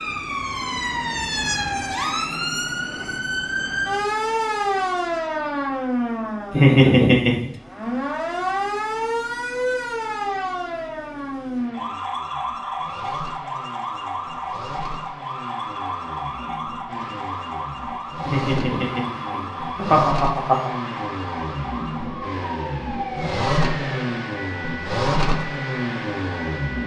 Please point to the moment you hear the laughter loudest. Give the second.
7 s.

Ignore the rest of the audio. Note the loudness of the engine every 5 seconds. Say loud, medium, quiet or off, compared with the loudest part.
quiet, quiet, quiet, medium, loud, loud.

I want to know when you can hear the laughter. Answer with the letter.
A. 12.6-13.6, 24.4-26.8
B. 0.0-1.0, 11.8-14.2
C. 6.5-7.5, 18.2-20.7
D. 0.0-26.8
C.